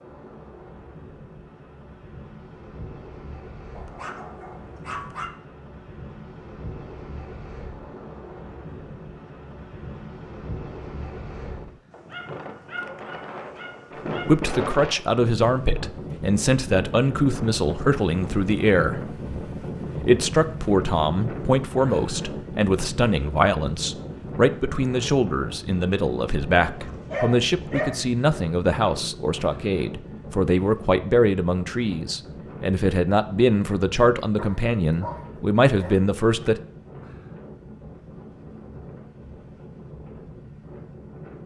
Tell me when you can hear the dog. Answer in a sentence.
The dog can be heard from 3.8 to 5.3 s, from 11.9 to 14.4 s, from 26.6 to 28.1 s and from 34.4 to 36.0 s.